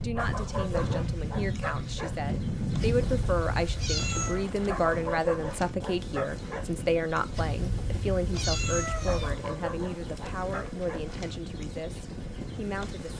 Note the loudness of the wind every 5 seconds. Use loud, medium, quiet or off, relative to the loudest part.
loud, medium, medium.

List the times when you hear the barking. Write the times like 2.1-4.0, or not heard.
0.1-2.1, 4.7-6.7, 9.1-11.1.